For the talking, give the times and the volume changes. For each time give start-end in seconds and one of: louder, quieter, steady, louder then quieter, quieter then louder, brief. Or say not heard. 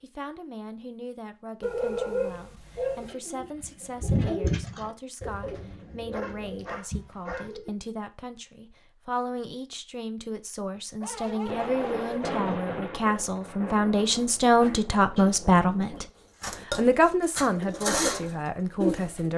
0.0-16.1 louder
16.8-19.3 brief.